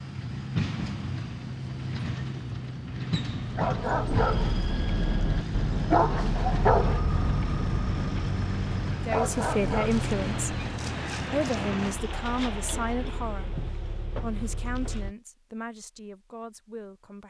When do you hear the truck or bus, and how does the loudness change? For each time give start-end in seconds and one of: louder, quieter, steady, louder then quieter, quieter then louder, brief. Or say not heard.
0.0-15.2 quieter.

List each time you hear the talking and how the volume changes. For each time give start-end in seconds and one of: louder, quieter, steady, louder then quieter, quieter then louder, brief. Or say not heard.
9.1-10.5 brief
11.2-17.2 quieter.